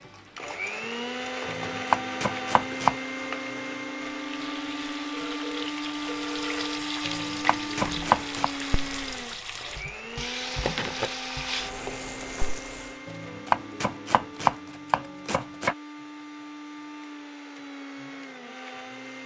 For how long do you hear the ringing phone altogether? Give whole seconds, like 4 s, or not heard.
2 s.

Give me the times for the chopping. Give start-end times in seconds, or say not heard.
1.4-3.0, 7.0-8.5, 13.1-15.8.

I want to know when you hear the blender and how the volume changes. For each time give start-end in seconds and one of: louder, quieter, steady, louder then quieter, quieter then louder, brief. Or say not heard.
0.0-19.2 quieter.